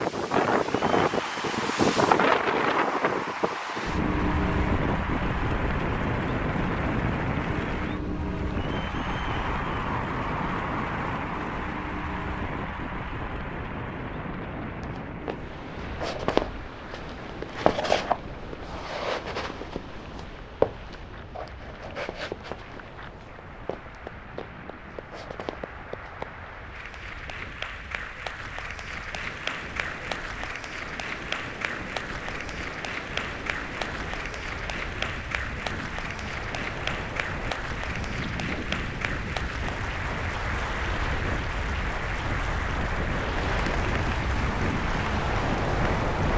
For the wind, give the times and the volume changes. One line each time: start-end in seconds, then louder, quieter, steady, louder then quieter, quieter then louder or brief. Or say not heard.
0.0-46.3 quieter then louder.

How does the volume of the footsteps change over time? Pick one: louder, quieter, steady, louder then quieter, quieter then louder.
quieter.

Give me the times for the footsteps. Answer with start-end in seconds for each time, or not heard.
14.7-26.3.